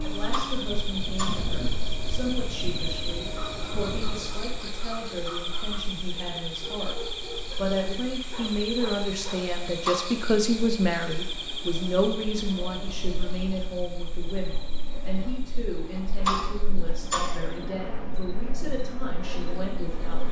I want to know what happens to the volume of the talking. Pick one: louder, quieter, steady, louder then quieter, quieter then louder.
louder then quieter.